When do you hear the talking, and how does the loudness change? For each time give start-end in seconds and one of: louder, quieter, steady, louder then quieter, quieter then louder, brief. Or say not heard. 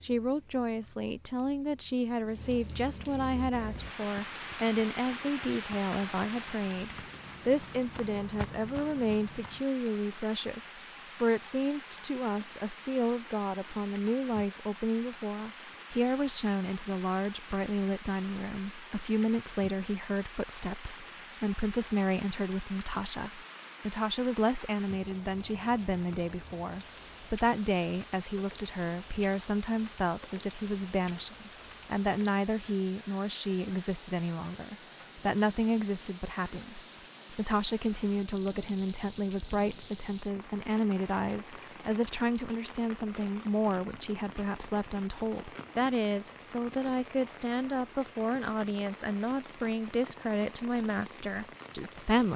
0.0-52.3 steady.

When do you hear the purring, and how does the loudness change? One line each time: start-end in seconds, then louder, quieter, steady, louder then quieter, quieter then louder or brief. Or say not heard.
not heard.